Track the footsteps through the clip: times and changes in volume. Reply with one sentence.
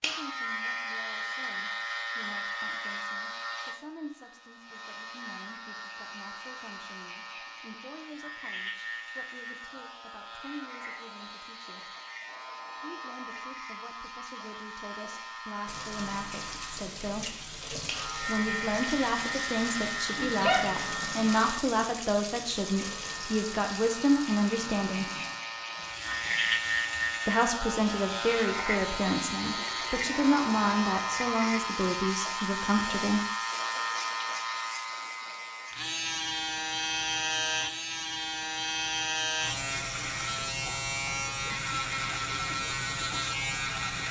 You can't hear the footsteps here.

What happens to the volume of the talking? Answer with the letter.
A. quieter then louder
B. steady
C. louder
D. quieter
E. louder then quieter
C.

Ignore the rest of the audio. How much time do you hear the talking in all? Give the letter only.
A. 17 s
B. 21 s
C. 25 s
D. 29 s
D.